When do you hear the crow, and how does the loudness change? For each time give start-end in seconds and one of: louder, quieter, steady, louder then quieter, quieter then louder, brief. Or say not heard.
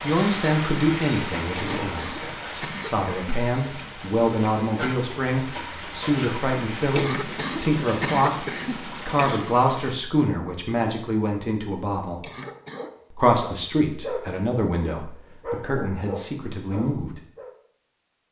not heard.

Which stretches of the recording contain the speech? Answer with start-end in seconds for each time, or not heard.
0.0-12.2, 13.1-17.2.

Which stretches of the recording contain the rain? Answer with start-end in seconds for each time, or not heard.
0.0-9.9.